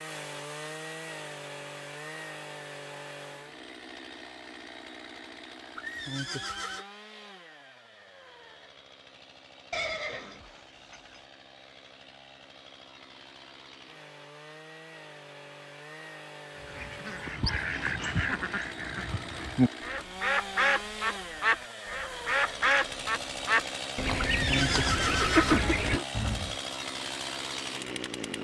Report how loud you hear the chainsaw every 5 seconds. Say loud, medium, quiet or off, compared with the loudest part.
medium, quiet, quiet, medium, loud, loud.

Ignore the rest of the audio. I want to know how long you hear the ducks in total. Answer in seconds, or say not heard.
10 s.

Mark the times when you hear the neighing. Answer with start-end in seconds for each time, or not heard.
5.8-6.8, 9.7-11.2, 24.2-26.1.